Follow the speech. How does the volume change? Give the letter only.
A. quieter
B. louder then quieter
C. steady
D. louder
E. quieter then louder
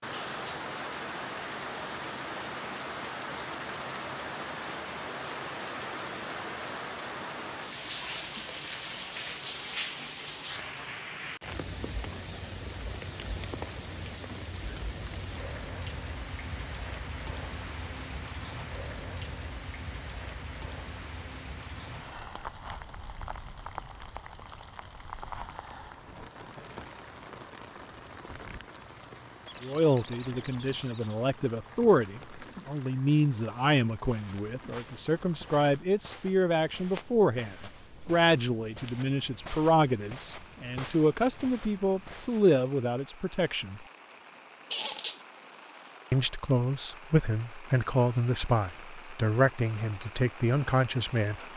C.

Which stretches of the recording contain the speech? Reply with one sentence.
You can hear the speech from 29.6 to 43.9 s and from 46.1 to 51.5 s.